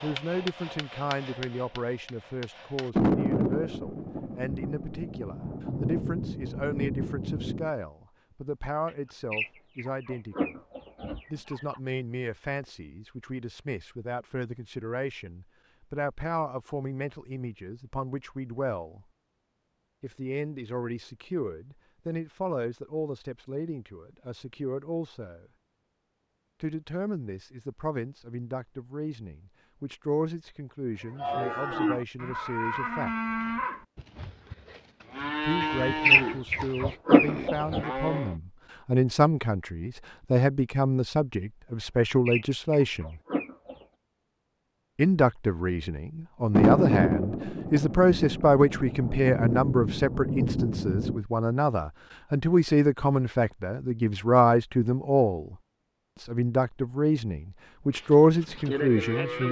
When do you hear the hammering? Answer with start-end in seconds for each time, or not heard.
0.0-2.9.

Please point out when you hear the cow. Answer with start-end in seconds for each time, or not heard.
31.0-38.4, 57.9-59.4.